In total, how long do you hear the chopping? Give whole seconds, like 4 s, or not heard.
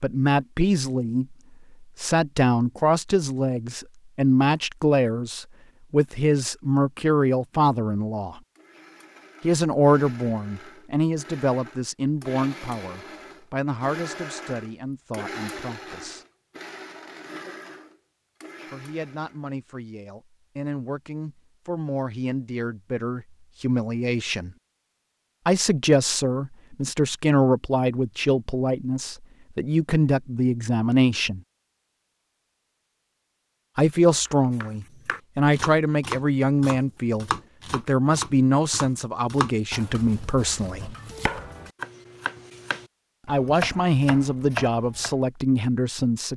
11 s.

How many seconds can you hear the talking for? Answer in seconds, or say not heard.
37 s.